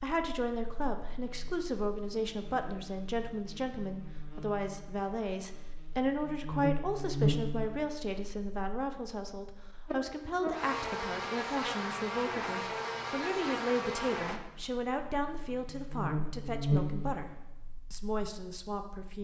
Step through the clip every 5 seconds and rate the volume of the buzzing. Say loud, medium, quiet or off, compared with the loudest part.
quiet, loud, loud, loud.